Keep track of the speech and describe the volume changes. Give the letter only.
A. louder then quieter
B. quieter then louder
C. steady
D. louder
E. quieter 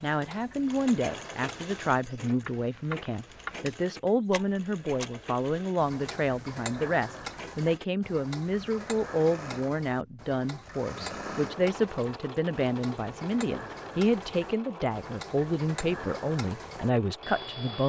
C.